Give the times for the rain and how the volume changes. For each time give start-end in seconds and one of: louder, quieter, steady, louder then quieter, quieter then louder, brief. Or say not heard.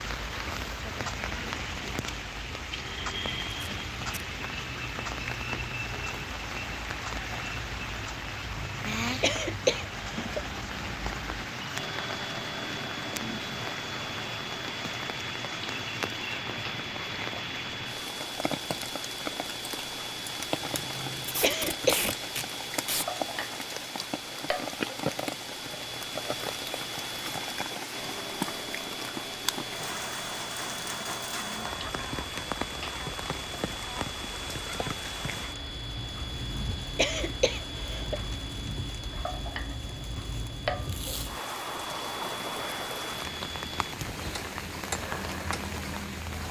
0.0-46.4 steady.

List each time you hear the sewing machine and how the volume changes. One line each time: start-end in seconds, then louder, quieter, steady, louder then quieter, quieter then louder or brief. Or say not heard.
not heard.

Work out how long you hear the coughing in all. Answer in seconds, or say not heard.
5 s.